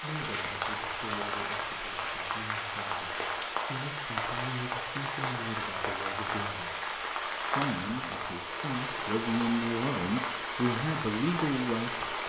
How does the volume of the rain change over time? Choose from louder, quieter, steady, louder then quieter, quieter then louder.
steady.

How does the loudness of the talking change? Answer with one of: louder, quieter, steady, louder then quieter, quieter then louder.
louder.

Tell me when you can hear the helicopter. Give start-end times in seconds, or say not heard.
not heard.